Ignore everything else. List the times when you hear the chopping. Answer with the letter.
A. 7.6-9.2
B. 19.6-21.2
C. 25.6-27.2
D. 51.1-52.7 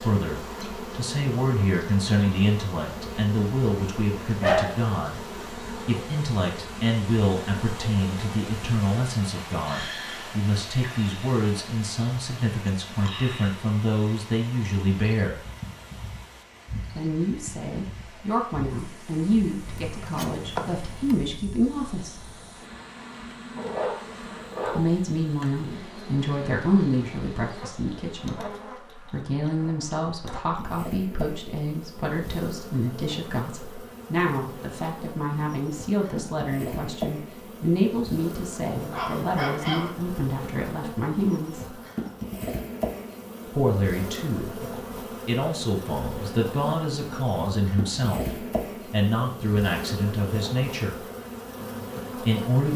B.